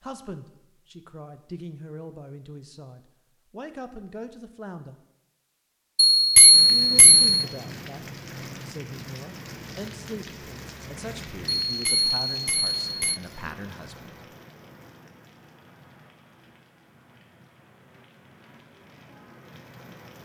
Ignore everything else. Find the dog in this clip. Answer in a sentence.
The dog can't be heard in this clip.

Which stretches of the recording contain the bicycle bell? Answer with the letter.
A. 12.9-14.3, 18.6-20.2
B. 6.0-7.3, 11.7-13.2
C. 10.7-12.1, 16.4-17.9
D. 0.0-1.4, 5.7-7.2
B.